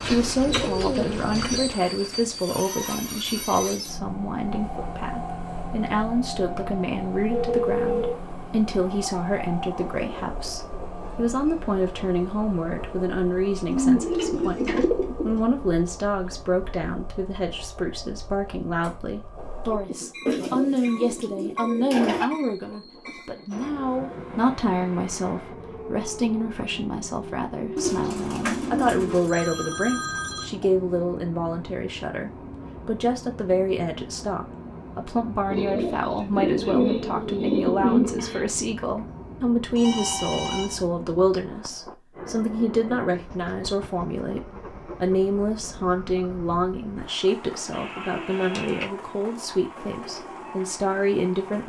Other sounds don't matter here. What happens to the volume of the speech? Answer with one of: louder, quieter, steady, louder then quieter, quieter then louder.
steady.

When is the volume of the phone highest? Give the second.
8 s.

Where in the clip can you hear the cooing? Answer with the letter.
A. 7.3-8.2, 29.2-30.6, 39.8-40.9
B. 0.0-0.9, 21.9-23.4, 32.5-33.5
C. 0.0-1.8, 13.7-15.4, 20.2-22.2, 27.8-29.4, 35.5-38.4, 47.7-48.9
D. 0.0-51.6
C.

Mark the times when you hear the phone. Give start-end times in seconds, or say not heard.
7.3-8.2, 29.2-30.6, 39.8-40.9.